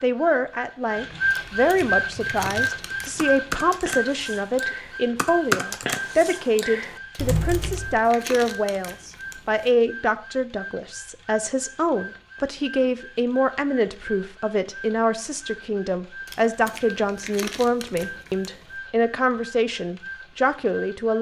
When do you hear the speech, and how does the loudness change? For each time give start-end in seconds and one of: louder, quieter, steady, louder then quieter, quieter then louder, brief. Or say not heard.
0.0-21.1 steady.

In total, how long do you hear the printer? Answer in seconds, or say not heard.
21 s.